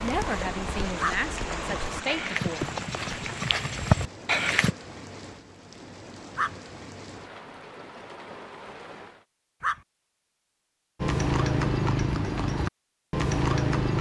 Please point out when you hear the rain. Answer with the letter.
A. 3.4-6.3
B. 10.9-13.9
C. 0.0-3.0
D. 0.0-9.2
D.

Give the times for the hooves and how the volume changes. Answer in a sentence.
The hooves can be heard from 0.0 to 4.8 s, getting louder; and briefly from 11.0 to 13.9 s.